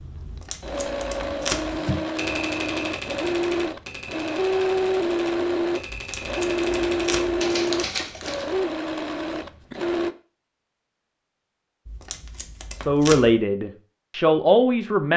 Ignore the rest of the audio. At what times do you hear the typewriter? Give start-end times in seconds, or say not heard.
1.6-8.5.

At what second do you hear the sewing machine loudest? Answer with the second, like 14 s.
5 s.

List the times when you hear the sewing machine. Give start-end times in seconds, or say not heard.
0.0-10.1.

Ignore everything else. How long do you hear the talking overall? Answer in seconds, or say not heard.
2 s.